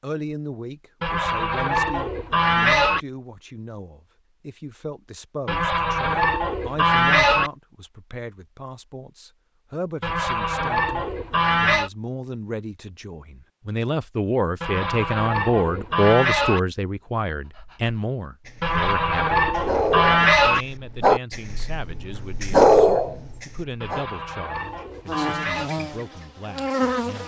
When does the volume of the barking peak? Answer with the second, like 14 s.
23 s.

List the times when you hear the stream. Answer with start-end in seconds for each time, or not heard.
not heard.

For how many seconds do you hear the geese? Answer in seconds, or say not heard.
12 s.